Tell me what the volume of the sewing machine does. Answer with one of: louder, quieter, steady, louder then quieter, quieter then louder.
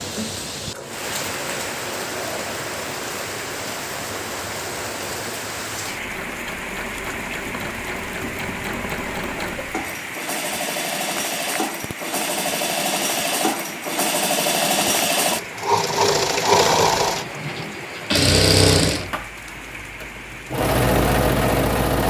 louder.